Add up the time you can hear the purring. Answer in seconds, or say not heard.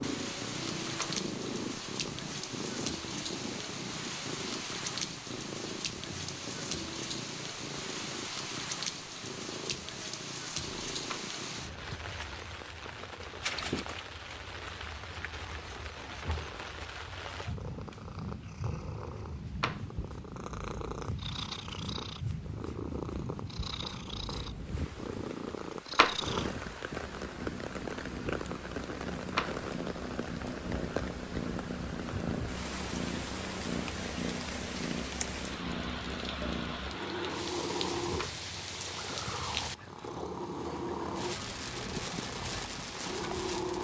44 s.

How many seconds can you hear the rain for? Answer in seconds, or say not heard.
44 s.